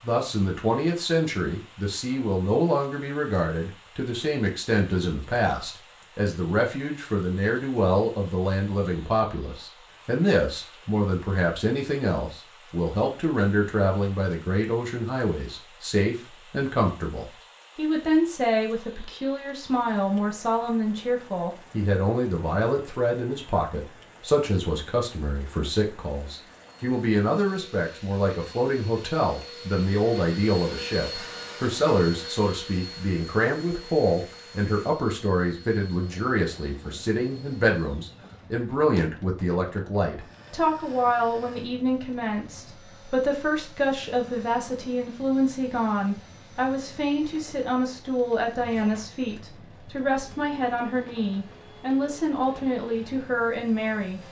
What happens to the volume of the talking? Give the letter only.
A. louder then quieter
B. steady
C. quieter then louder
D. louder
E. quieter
B.